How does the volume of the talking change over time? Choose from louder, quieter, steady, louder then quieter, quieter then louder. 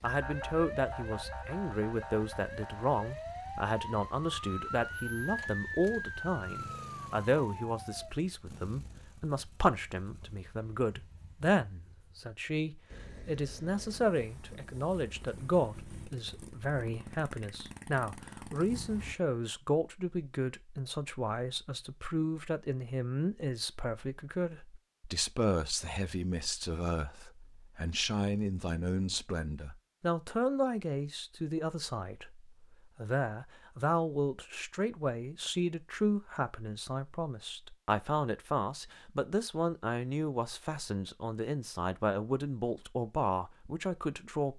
steady.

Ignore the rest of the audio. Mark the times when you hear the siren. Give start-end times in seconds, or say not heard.
0.1-8.2.